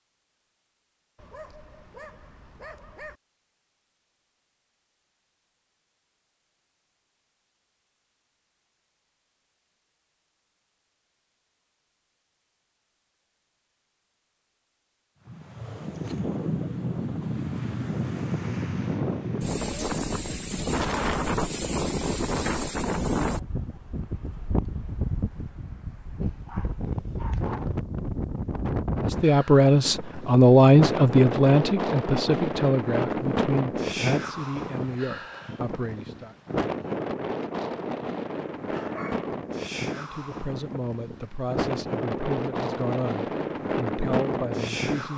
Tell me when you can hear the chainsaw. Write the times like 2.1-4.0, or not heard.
not heard.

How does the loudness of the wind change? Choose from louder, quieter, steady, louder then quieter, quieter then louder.
steady.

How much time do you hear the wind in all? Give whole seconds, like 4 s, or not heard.
30 s.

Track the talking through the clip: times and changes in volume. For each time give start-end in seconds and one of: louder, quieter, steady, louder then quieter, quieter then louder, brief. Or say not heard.
29.1-36.4 quieter
39.9-45.1 steady.